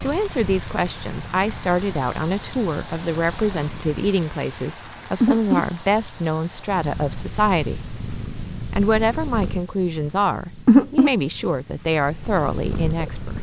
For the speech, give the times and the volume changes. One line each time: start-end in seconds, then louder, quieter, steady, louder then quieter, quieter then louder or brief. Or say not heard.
0.0-8.0 steady
8.7-13.3 steady.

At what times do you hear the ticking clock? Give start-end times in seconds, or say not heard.
not heard.